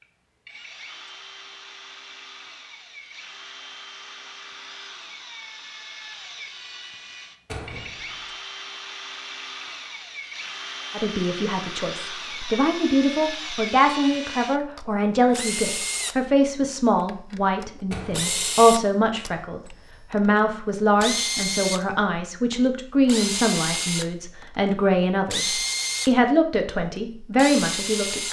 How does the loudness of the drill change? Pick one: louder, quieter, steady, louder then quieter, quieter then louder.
louder.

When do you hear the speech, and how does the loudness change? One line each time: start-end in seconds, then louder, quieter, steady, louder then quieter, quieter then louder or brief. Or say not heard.
10.9-28.2 steady.